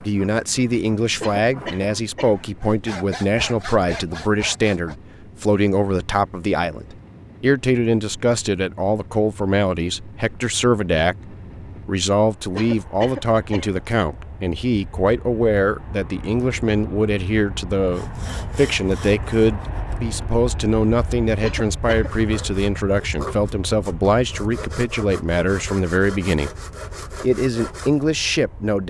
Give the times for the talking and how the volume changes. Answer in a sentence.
You can hear the talking from 0.0 to 26.5 s, at a steady volume; and briefly from 27.2 to 28.8 s.